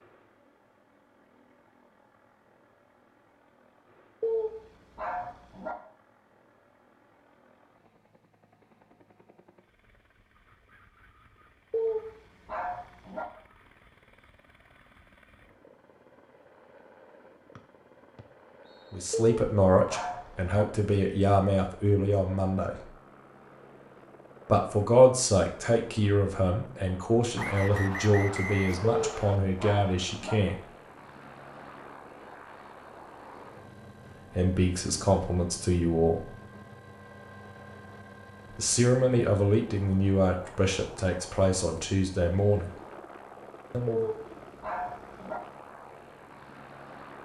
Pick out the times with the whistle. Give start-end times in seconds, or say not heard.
17.6-18.9, 27.4-29.4.